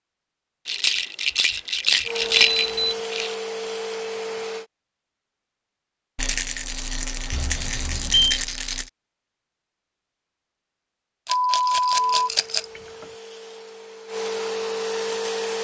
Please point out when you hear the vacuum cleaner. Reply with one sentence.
The vacuum cleaner can be heard from 2.0 to 4.7 s and from 11.9 to 15.5 s.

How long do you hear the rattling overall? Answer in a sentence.
The rattling can be heard for 7 seconds in total.